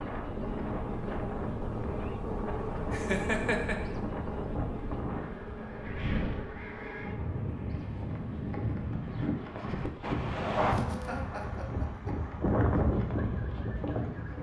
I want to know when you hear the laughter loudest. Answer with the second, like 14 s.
3 s.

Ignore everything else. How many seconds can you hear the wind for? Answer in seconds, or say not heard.
14 s.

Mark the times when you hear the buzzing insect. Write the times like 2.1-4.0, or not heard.
0.0-14.3.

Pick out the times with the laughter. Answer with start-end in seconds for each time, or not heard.
2.9-3.8, 10.7-12.2.